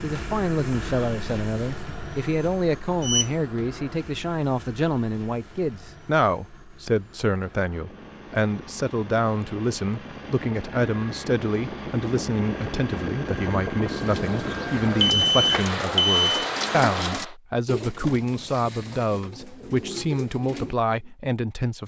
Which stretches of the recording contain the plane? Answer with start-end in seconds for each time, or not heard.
0.0-17.4.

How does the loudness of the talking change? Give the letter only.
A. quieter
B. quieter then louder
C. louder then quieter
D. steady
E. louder
D.